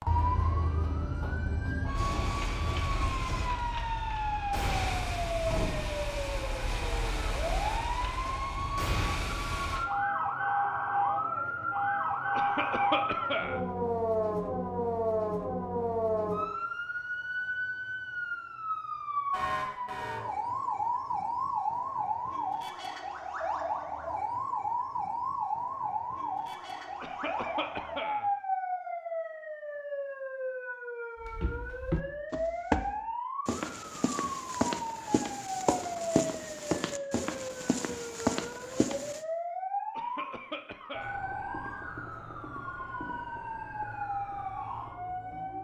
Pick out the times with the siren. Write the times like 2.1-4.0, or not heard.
0.0-45.5.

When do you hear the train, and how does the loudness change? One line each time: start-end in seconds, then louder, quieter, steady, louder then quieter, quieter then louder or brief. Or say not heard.
not heard.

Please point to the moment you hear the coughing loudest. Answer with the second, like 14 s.
13 s.